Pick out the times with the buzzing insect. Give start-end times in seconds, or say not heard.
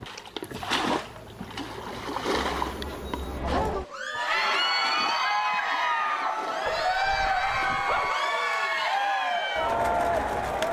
0.0-3.4.